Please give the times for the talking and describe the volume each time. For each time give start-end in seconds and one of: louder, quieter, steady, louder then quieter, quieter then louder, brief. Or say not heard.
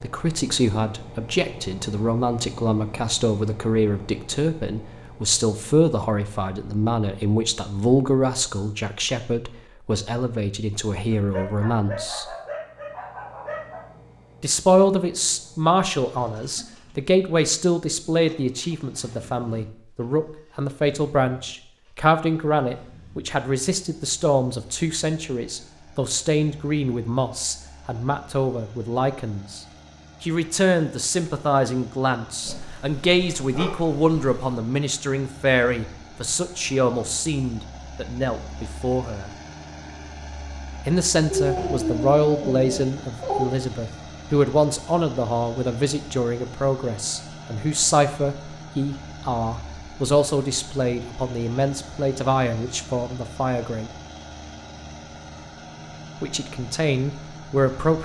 0.0-12.2 steady
14.4-39.3 steady
40.9-53.9 steady
56.2-58.0 brief.